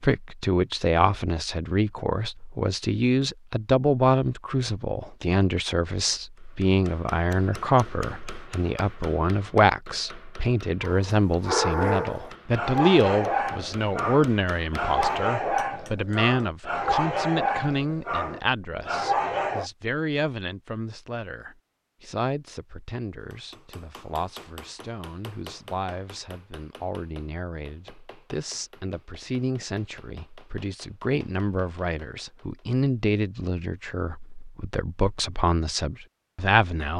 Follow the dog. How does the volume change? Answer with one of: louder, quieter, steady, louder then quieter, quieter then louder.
steady.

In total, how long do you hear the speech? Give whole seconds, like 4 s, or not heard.
37 s.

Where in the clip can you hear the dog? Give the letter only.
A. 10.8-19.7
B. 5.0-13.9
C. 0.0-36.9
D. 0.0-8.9
A.